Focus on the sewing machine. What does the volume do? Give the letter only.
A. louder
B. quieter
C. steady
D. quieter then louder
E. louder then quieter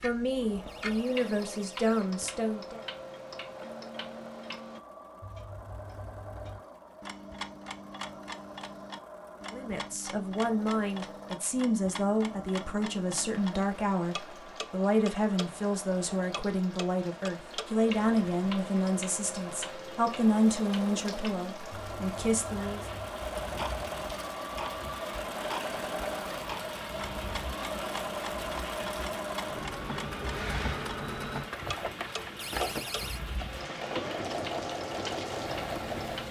A.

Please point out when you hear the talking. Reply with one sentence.
You can hear the talking from 0.0 to 2.8 s and from 9.5 to 22.9 s.